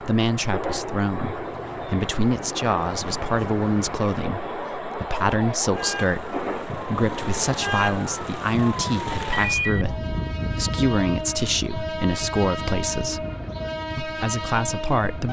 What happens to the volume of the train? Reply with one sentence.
The volume of the train stays about the same.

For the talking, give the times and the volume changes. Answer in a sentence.
You can hear the talking from 0.0 to 13.2 s, at a steady volume; and briefly from 13.9 to 15.2 s.